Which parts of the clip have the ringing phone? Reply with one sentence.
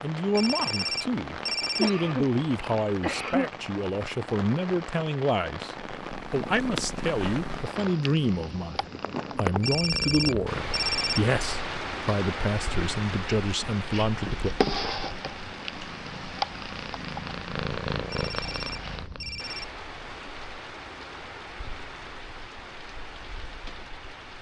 You can hear the ringing phone from 0.3 to 1.9 s, from 9.6 to 11.2 s and from 18.1 to 19.6 s.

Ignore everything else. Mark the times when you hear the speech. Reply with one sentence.
You can hear the speech from 0.0 to 14.5 s.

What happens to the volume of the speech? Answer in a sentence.
The loudness of the speech stays about the same.